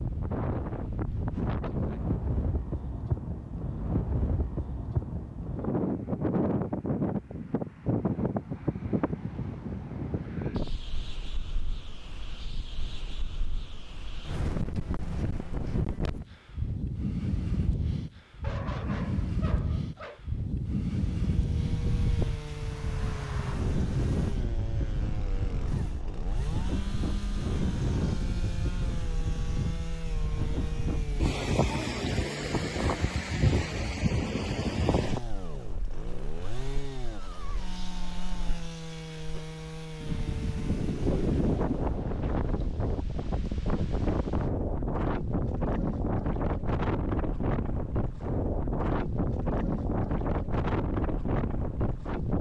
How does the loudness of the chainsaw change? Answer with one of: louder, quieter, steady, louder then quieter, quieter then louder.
steady.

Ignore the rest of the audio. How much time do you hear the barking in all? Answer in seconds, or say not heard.
2 s.